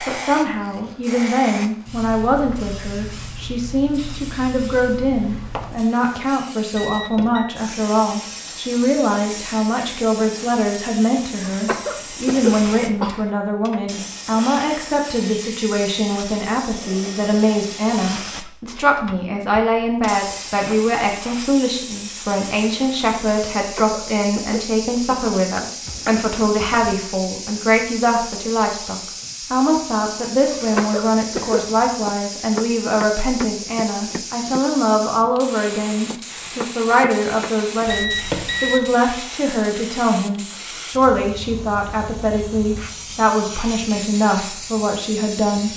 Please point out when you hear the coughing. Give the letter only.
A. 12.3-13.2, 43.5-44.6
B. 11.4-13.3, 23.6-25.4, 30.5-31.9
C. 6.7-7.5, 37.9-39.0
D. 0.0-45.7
B.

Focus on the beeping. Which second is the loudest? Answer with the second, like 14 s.
38 s.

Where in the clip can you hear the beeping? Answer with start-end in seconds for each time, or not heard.
6.7-7.5, 37.9-39.0.